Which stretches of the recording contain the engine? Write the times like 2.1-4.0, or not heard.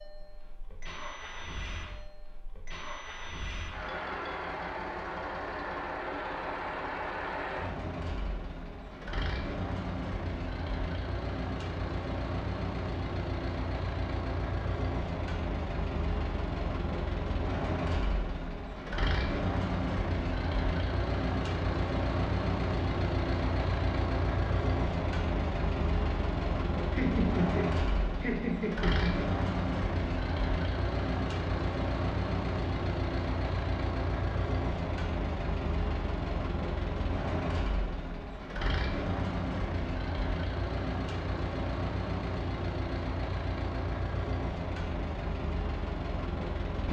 0.0-46.8.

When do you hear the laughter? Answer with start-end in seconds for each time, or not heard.
26.9-29.2.